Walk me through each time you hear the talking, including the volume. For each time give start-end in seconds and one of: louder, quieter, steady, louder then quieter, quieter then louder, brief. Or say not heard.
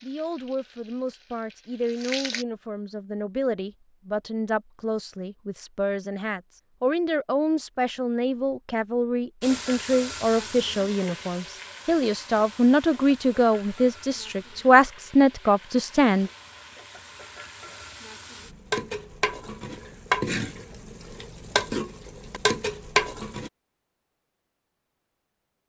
0.0-16.3 louder.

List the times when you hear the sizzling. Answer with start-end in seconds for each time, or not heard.
0.0-2.5, 9.4-23.5.